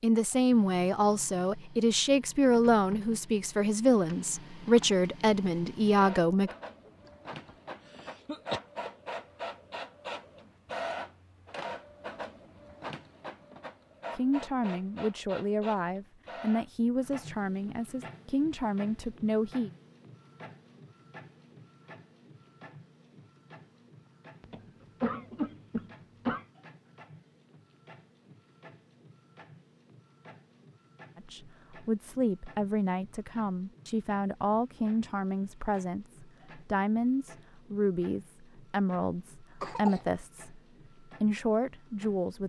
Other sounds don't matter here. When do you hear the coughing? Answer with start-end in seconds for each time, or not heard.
6.8-8.6, 24.4-26.4, 39.6-40.0.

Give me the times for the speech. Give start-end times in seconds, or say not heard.
0.0-6.5, 14.2-19.7, 31.1-40.6, 41.2-42.4.